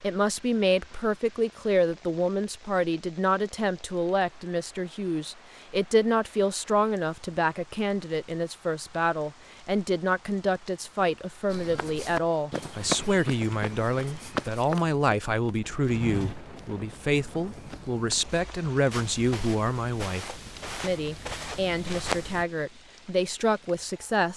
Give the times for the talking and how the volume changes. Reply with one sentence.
You can hear the talking from 0.0 to 24.3 s, at a steady volume.